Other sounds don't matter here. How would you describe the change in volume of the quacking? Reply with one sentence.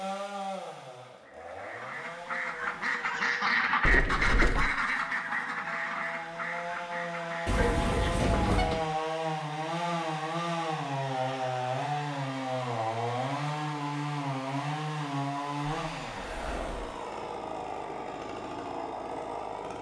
The loudness of the quacking goes up, then down.